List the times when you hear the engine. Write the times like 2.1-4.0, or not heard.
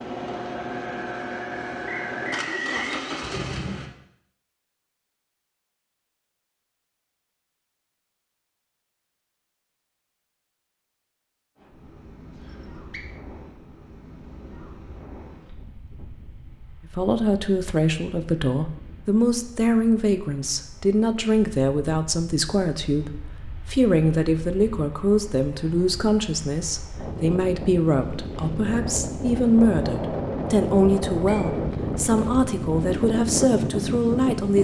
0.0-3.9.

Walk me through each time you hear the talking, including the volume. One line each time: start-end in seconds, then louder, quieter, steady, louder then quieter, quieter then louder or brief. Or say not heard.
16.9-34.5 steady.